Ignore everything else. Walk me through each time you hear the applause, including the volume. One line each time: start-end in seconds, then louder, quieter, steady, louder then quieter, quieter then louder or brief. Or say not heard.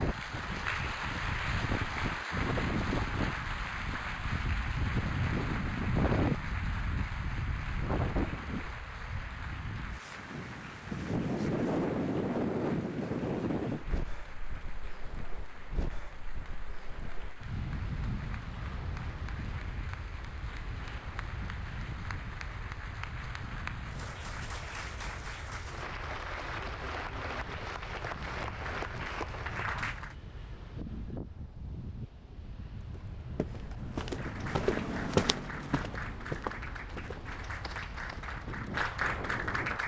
0.0-30.1 quieter then louder
34.1-39.8 louder.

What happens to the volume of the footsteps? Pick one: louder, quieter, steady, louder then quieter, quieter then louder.
louder then quieter.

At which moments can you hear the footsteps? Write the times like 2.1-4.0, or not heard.
32.8-38.3.